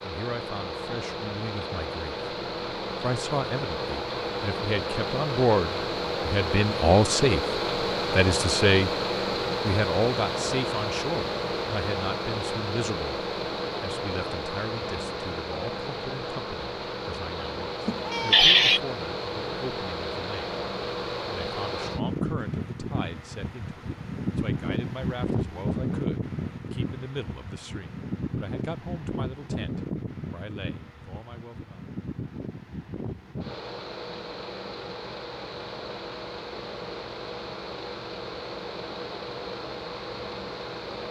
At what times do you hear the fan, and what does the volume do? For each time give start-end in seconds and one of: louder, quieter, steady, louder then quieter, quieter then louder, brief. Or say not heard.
0.0-41.0 quieter.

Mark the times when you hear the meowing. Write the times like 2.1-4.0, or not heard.
17.9-18.8.